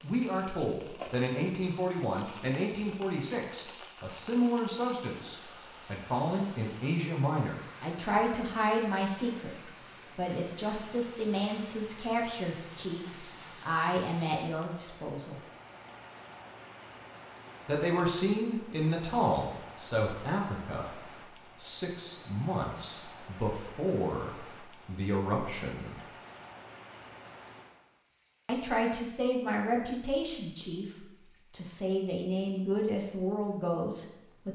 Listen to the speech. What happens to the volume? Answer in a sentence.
The volume of the speech stays about the same.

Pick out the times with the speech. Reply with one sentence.
You can hear the speech from 0.0 to 9.6 s, from 10.2 to 15.4 s, from 17.6 to 26.0 s and from 28.4 to 34.5 s.